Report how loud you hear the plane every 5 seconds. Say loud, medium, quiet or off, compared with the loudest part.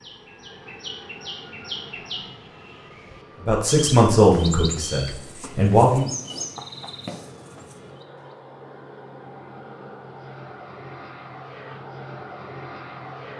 medium, medium, loud.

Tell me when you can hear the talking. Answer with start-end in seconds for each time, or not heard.
3.4-6.1.